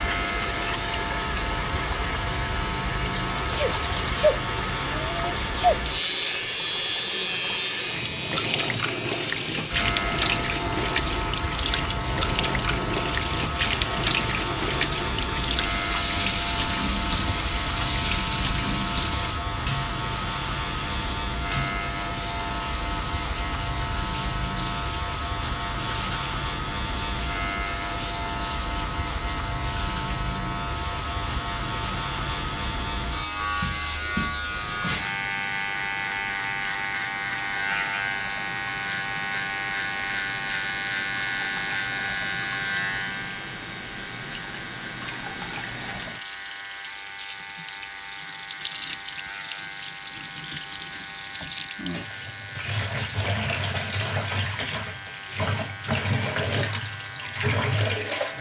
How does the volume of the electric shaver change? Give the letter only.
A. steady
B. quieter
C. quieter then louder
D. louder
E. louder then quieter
B.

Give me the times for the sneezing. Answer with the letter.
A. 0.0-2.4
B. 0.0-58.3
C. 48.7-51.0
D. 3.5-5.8
D.